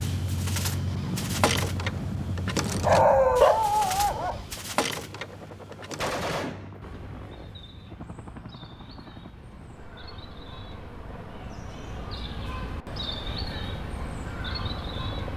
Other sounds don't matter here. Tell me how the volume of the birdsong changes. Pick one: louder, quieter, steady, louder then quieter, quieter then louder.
quieter then louder.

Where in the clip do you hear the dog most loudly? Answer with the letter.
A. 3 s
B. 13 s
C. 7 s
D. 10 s
A.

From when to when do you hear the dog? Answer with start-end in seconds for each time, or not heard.
2.8-4.5.